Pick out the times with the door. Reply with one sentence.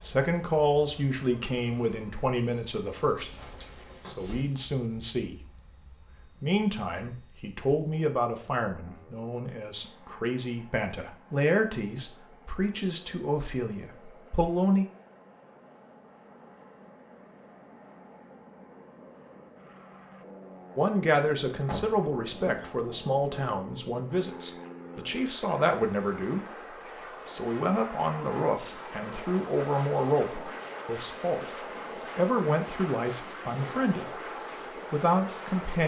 You can hear the door from 3.1 to 4.5 s and from 21.6 to 22.7 s.